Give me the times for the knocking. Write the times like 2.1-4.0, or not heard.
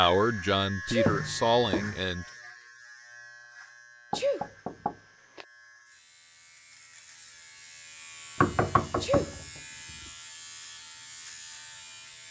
1.1-2.0, 4.1-5.5, 8.4-9.4.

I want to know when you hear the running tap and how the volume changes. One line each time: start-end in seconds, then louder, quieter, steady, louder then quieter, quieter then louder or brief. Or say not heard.
not heard.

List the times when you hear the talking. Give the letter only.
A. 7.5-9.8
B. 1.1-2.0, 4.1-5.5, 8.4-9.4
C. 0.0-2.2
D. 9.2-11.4
C.